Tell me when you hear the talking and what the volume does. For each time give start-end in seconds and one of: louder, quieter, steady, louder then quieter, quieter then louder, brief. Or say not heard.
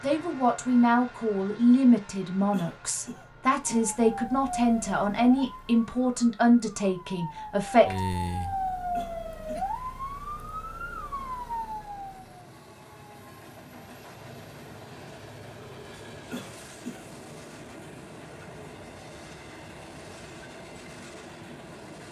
0.0-8.0 steady.